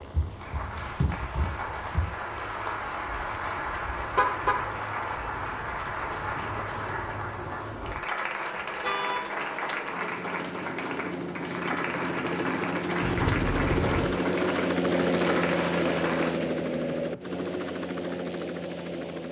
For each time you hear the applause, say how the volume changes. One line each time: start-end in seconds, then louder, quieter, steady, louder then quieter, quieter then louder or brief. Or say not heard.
0.0-16.4 steady.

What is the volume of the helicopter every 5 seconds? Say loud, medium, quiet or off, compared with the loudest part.
quiet, quiet, loud, loud.